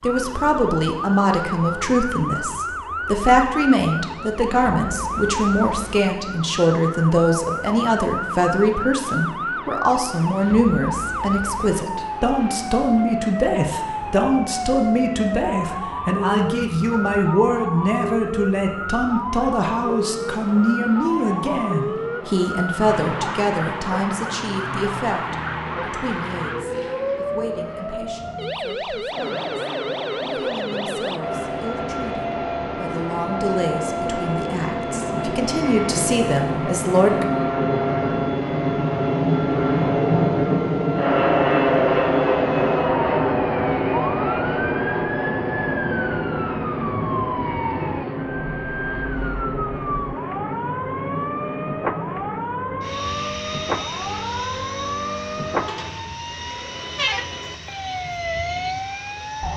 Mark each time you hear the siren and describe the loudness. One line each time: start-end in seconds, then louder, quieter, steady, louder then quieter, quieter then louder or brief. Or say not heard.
0.0-59.5 steady.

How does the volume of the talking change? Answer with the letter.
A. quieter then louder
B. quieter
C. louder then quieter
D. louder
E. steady
B.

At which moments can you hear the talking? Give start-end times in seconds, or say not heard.
0.0-37.2.